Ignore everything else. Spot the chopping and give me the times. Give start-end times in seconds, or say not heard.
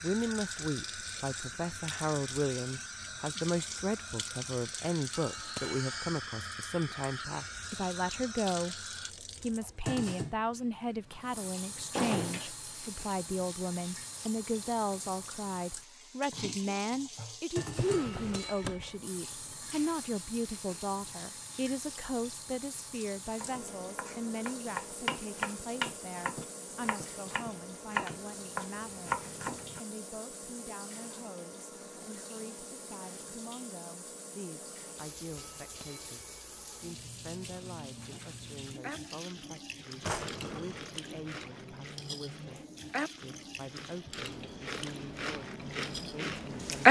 23.4-29.8.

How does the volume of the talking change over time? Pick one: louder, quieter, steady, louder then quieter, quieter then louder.
quieter.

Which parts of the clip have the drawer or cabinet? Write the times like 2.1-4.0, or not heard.
11.9-12.5, 17.7-18.9, 40.0-40.9.